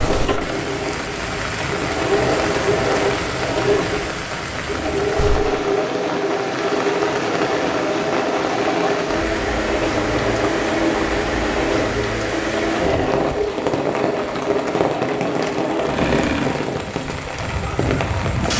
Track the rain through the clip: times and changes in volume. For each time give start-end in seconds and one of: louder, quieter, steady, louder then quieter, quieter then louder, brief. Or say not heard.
0.0-18.5 steady.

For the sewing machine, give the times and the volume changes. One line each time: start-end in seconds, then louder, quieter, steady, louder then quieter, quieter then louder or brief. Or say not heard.
0.0-18.5 steady.